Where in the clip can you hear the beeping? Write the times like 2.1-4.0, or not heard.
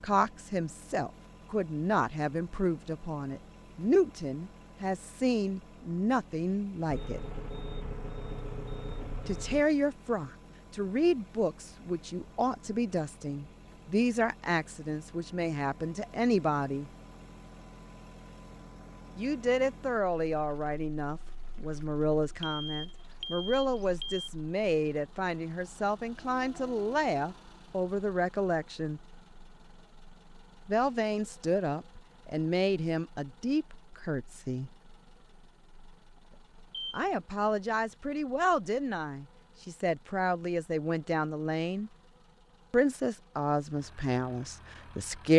6.9-9.7, 22.4-24.2, 36.3-37.0.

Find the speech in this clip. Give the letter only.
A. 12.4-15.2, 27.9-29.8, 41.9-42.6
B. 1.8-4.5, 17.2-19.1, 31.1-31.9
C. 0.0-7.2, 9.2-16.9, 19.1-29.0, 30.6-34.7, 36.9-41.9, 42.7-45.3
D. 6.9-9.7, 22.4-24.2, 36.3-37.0
C.